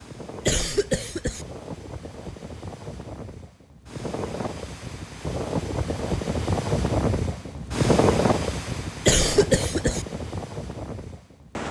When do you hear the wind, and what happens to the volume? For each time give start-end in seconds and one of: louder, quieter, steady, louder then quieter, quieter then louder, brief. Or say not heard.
0.0-11.6 louder then quieter.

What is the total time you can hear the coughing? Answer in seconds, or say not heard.
2 s.